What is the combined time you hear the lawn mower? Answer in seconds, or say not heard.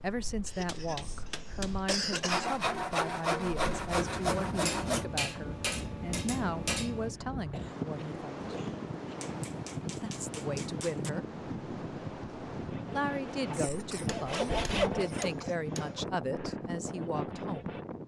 not heard.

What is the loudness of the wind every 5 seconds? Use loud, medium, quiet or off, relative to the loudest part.
medium, loud, loud, loud.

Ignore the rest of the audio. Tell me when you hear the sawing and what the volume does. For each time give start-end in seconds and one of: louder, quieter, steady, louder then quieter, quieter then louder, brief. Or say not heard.
2.2-5.0 brief
12.6-17.9 louder then quieter.